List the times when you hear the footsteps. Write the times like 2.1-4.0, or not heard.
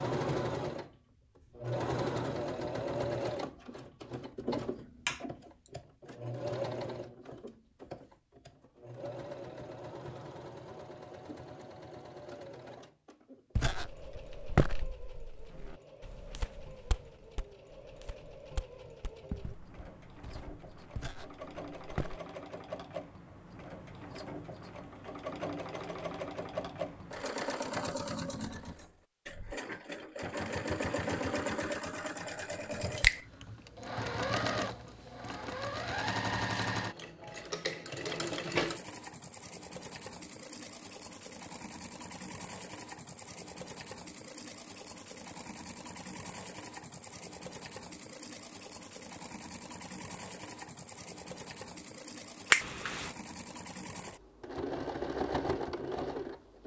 13.6-22.2.